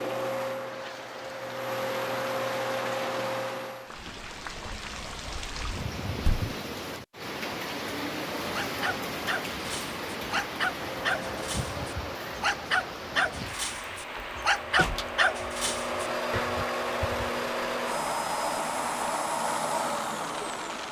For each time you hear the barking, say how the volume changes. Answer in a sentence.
The barking can be heard from 8.4 to 17.3 s, getting louder then quieter.